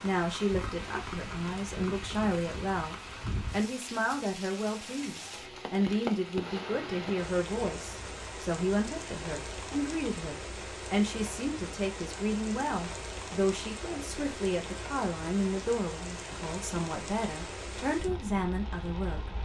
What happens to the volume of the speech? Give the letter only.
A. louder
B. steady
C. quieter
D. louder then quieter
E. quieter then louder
B.